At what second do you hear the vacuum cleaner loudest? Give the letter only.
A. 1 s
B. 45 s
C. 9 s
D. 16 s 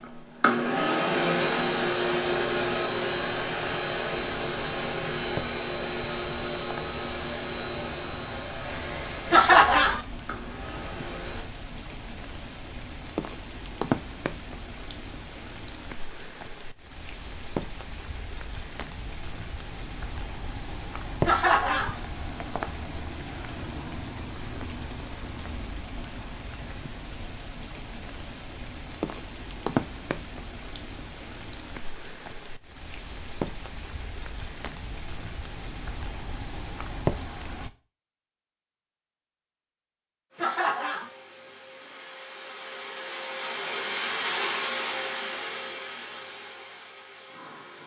A.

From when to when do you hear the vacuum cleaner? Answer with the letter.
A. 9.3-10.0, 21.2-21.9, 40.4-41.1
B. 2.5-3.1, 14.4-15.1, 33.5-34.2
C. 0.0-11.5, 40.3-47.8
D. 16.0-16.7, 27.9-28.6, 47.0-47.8
C.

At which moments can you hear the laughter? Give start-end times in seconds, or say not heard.
9.3-10.0, 21.2-21.9, 40.4-41.1.